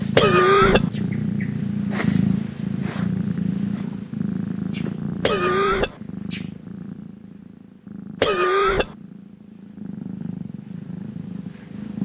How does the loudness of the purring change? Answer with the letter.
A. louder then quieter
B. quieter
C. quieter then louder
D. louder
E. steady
C.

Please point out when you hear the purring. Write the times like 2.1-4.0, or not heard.
0.0-12.0.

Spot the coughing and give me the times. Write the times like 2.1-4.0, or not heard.
0.1-0.9, 5.2-6.0, 8.2-8.9.